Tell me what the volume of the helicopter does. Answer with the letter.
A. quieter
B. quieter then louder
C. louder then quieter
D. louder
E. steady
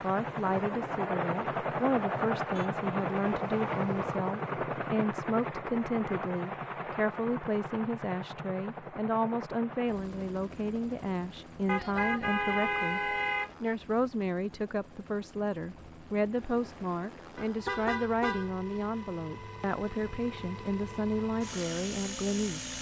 B.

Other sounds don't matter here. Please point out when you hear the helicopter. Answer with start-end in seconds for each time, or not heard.
0.0-22.7.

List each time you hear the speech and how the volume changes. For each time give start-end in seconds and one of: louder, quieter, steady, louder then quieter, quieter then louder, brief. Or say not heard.
0.0-22.7 steady.